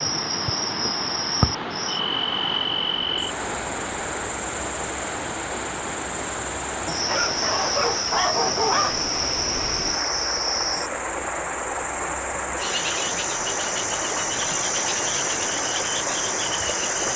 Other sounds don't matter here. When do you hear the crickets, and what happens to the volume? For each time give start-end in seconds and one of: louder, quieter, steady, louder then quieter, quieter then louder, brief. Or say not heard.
0.0-17.1 quieter then louder.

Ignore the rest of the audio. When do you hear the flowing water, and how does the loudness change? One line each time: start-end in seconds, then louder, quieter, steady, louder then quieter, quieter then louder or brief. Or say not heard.
0.0-17.1 steady.